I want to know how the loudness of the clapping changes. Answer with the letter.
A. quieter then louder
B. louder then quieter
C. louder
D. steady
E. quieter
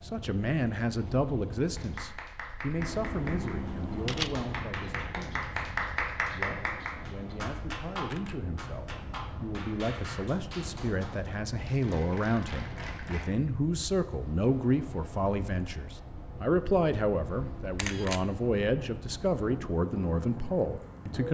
B.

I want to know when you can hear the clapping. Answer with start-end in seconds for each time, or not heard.
1.8-13.2.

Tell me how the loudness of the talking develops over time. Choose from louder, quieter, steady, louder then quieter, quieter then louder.
quieter then louder.